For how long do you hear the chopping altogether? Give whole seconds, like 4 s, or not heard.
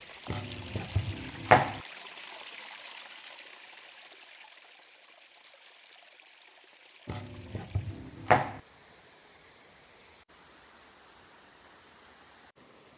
3 s.